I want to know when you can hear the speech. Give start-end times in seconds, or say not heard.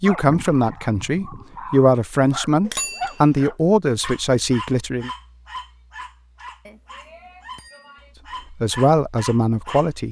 0.0-5.1, 8.5-10.0.